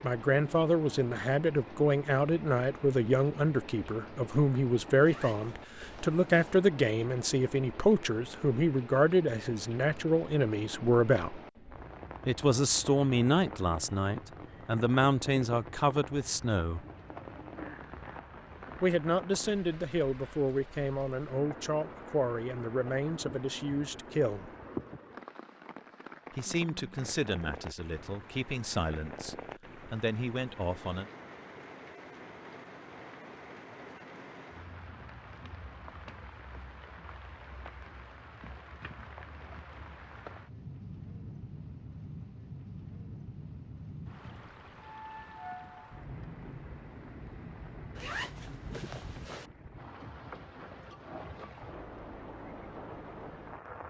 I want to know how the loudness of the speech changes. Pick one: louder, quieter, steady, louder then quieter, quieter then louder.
quieter.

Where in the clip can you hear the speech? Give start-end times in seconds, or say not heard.
0.0-11.4, 12.2-16.8, 18.8-24.5, 26.3-31.1.